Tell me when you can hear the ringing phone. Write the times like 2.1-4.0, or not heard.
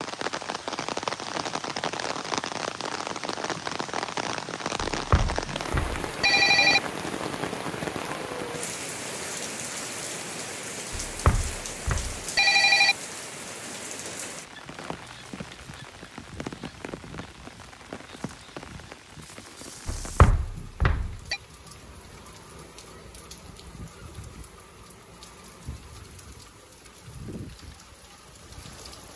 4.9-6.8, 11.1-12.9, 19.9-21.4.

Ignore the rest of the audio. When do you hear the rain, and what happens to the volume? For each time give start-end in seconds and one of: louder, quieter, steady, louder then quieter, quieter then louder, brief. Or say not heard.
0.0-29.1 quieter.